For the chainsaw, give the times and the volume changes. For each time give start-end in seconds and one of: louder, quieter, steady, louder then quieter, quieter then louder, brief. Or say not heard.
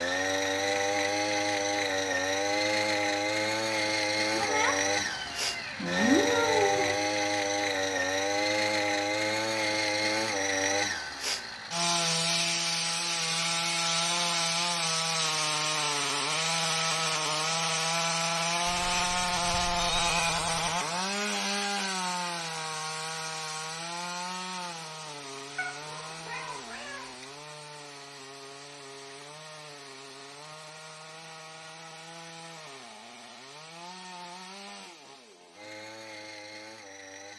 0.0-37.3 quieter.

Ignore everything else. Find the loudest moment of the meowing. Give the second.
6 s.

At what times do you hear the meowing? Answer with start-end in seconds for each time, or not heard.
4.3-7.0, 18.6-20.8, 25.6-27.2.